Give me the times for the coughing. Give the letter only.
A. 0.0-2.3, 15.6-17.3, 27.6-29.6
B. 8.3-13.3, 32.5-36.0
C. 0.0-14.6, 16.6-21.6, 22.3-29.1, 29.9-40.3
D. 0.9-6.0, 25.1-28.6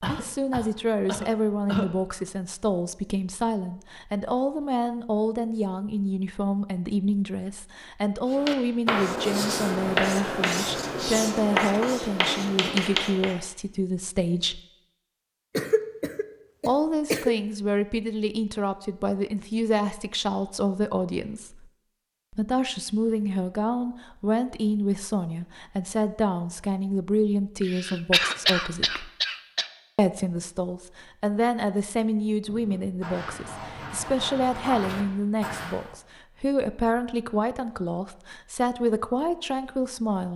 A.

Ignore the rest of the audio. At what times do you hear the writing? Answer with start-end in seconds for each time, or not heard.
8.3-13.3, 32.5-36.0.